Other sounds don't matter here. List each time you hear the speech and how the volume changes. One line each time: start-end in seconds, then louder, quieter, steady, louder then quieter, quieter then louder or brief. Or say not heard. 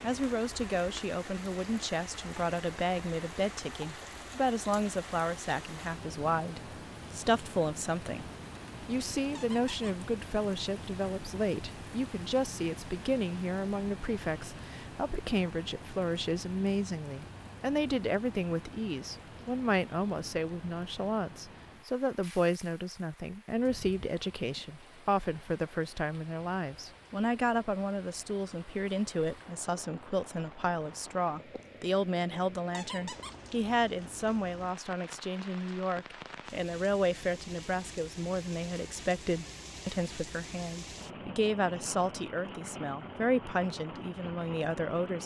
0.0-45.2 steady.